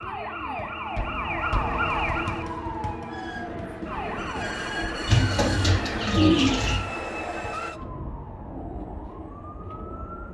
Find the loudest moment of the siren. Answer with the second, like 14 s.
2 s.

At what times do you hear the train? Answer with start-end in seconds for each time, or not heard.
3.0-7.8.